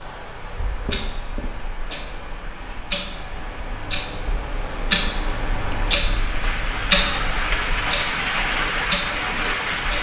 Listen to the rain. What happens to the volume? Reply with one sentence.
The loudness of the rain goes up.